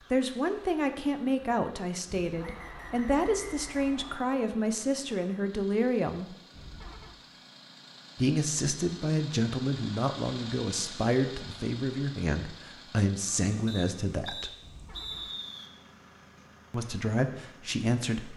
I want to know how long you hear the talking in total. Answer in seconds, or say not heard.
14 s.